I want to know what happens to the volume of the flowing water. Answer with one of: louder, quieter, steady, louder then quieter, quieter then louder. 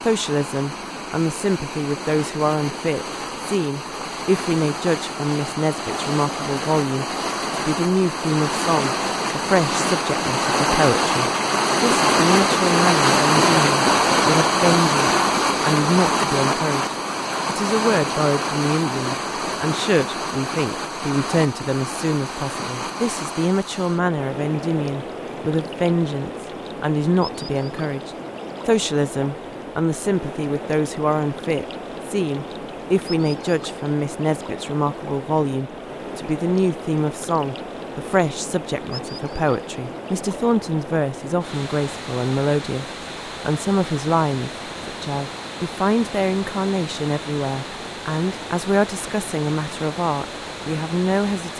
louder then quieter.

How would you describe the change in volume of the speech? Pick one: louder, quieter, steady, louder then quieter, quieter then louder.
steady.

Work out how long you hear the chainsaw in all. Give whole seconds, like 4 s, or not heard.
not heard.